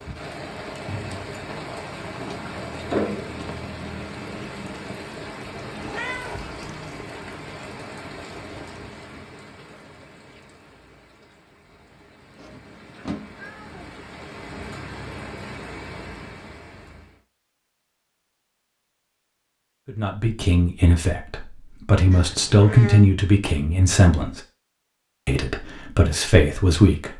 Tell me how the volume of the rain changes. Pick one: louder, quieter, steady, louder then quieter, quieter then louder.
quieter then louder.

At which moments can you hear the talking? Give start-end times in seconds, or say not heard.
19.9-24.4, 25.2-27.1.